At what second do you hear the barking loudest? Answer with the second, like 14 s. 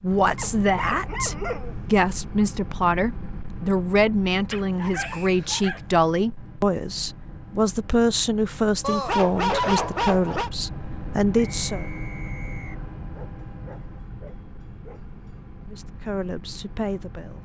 10 s.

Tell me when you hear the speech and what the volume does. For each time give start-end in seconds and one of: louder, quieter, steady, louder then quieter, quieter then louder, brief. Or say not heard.
0.0-11.8 steady
15.7-17.4 brief.